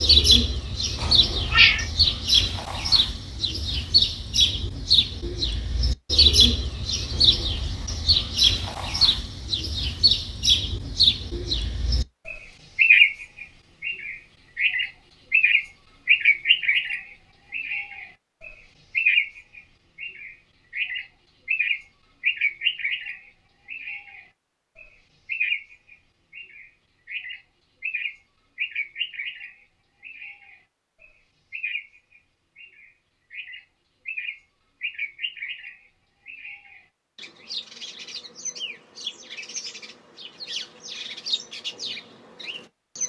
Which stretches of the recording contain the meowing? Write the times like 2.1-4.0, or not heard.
0.9-1.9.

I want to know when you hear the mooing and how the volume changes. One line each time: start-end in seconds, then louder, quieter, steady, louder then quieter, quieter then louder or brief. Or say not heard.
not heard.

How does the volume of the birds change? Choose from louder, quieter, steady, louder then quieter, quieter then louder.
quieter.